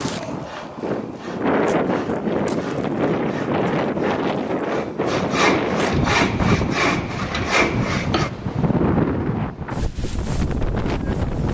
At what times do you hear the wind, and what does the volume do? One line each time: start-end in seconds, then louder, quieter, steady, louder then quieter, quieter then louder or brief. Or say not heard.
0.0-11.4 steady.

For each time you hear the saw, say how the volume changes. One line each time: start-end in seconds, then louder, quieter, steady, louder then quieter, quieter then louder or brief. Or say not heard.
0.2-8.3 louder.